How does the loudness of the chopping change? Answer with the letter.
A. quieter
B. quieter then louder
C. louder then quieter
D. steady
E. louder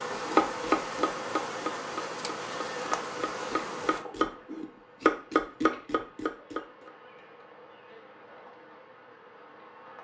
B.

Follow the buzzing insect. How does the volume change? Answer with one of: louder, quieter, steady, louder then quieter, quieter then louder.
quieter.